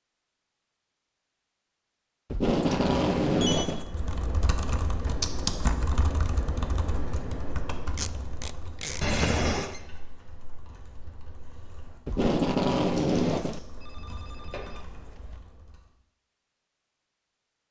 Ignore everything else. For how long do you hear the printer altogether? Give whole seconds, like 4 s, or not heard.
not heard.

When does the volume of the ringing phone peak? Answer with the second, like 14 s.
9 s.